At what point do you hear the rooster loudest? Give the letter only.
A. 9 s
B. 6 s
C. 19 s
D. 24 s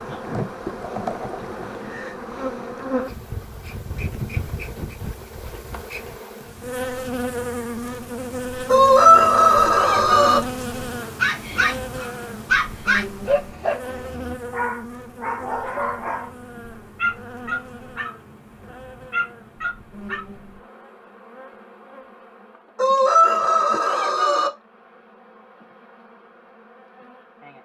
A.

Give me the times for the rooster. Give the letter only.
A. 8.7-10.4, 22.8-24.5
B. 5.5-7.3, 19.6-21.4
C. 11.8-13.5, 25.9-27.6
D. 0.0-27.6
A.